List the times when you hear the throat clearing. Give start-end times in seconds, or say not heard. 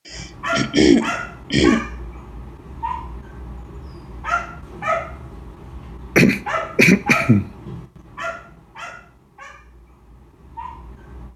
0.1-1.9, 6.2-7.5.